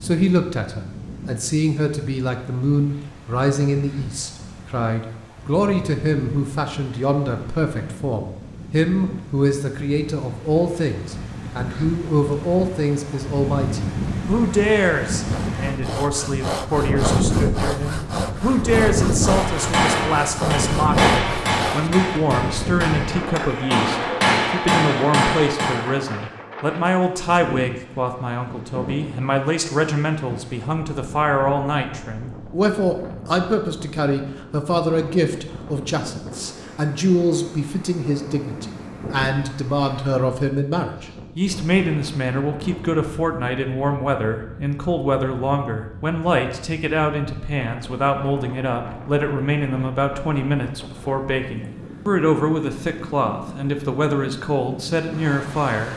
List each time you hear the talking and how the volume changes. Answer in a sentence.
You can hear the talking from 0.0 to 55.9 s, at a steady volume.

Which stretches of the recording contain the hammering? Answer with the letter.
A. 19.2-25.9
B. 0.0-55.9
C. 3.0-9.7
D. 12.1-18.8
A.